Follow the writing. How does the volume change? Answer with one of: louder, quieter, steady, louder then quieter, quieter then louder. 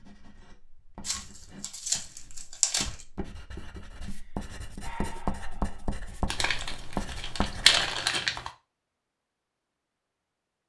louder.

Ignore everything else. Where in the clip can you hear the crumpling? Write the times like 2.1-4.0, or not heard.
1.1-3.0, 6.2-8.5.